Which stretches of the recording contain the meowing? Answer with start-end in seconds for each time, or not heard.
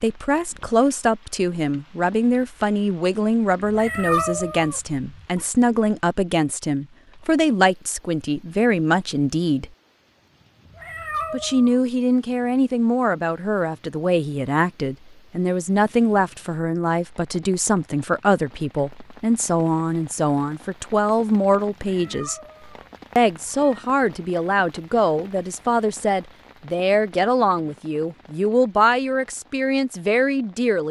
3.6-5.5, 10.7-11.8, 21.9-23.9.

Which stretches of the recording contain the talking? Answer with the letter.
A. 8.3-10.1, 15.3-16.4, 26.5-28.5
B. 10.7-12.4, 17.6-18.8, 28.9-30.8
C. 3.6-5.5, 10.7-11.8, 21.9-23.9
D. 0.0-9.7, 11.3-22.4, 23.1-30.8
D.